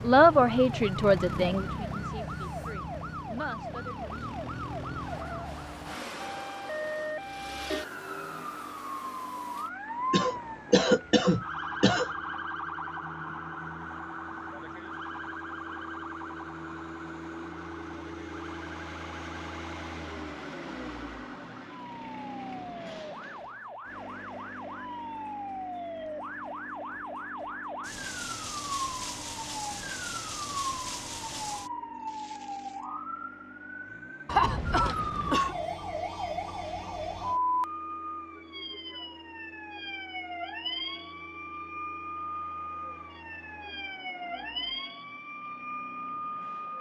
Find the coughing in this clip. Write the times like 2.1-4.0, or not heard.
10.1-12.1, 34.2-35.5.